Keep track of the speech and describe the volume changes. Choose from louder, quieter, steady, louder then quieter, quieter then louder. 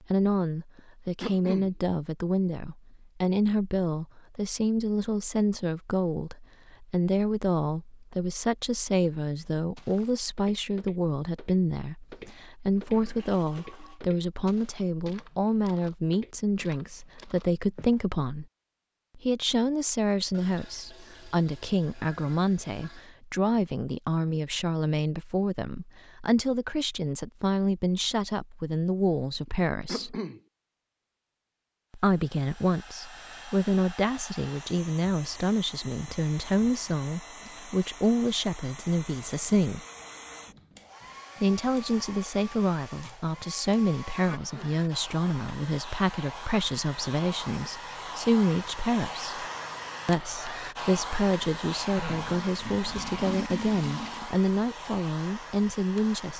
steady.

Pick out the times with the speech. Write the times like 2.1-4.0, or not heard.
0.1-18.4, 19.1-30.1, 31.9-39.8, 41.4-49.5, 50.0-56.3.